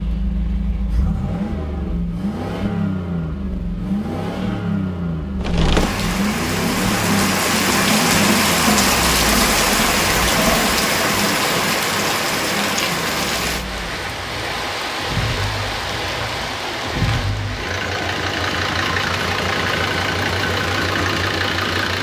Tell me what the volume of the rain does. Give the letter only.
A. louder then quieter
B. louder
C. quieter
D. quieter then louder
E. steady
C.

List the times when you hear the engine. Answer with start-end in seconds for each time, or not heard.
0.0-21.9.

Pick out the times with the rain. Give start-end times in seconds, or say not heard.
5.4-21.9.